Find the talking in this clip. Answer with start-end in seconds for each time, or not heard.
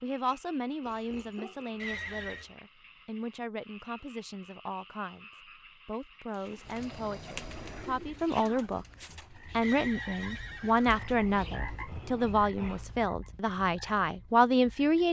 0.0-5.2, 5.8-15.0.